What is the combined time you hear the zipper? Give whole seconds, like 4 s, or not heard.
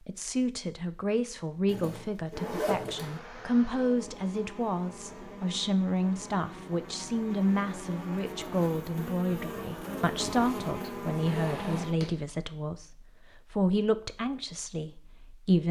3 s.